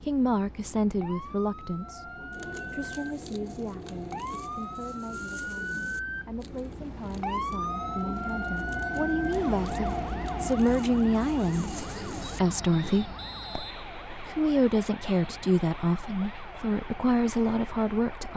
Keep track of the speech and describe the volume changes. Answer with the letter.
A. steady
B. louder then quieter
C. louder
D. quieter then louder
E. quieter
D.